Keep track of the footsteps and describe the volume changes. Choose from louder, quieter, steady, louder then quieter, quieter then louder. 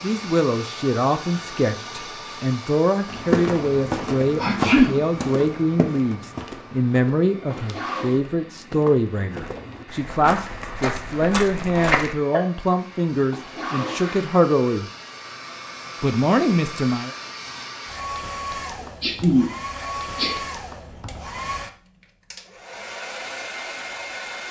quieter then louder.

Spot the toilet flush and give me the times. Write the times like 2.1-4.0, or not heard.
7.5-8.2, 13.3-14.3.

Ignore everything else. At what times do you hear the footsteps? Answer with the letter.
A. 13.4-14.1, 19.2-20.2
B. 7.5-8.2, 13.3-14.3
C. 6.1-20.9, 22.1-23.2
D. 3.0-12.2
D.